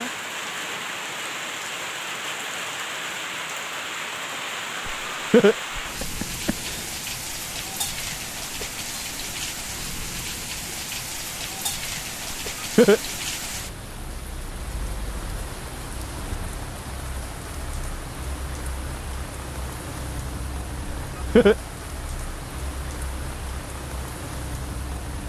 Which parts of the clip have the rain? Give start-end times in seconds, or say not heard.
0.0-25.2.